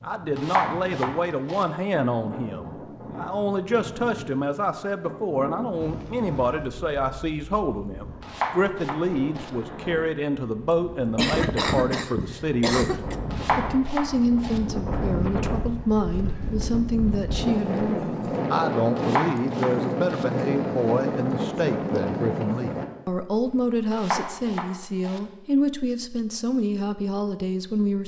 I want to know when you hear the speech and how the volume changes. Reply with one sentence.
The speech can be heard from 0.0 to 28.0 s, at a steady volume.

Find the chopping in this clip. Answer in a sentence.
You can hear the chopping from 0.3 to 1.6 s, from 8.2 to 9.5 s, from 13.3 to 14.6 s, from 18.9 to 20.2 s and from 23.9 to 25.2 s.